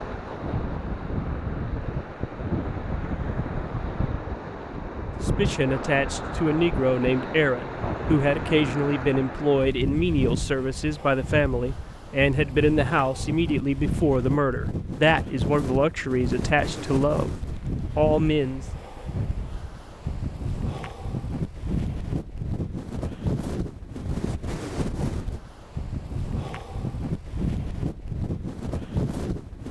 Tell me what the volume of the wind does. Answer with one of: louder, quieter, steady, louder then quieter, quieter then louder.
steady.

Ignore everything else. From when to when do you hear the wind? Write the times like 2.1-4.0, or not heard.
0.0-29.6.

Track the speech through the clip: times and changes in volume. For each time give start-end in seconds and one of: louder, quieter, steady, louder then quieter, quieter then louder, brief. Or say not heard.
5.2-18.6 steady.